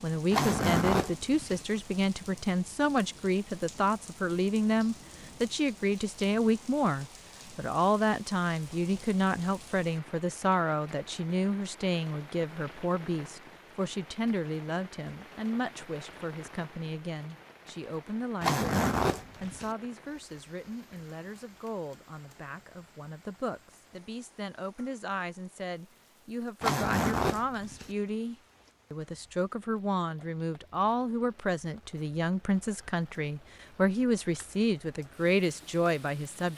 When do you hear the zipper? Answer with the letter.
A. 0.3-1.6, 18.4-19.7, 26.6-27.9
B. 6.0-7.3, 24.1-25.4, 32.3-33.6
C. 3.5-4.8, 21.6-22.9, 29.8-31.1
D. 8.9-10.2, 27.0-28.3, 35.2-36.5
A.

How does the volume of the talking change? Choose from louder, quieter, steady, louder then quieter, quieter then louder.
quieter then louder.